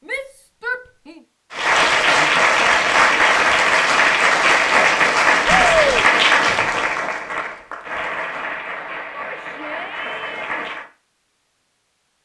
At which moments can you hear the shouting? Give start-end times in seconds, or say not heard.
0.1-1.2, 5.5-6.0, 9.1-10.5.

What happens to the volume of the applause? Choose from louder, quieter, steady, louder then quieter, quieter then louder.
quieter.